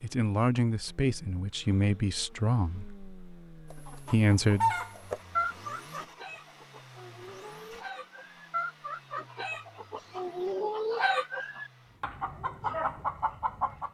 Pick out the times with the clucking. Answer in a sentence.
The clucking can be heard from 3.7 to 13.8 s.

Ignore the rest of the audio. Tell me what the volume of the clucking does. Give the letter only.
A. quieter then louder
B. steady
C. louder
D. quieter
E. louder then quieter
A.